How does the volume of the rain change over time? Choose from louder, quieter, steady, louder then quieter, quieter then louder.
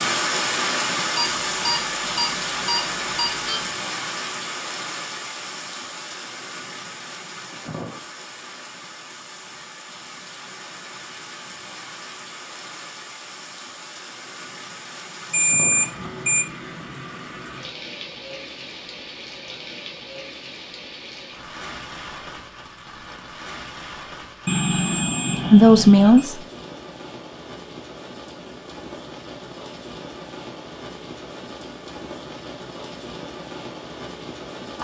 quieter.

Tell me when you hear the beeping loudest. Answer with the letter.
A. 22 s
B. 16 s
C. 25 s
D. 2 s
B.